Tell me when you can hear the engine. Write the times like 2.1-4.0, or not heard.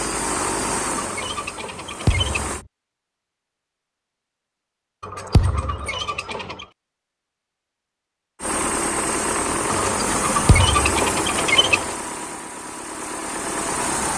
0.0-2.6, 8.4-14.1.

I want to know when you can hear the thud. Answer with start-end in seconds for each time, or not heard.
2.0-2.6, 5.3-5.8, 10.4-10.9.